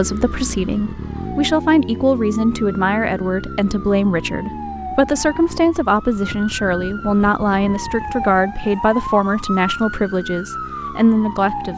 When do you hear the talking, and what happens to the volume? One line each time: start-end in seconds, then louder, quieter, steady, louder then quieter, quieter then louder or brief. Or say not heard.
0.0-11.7 steady.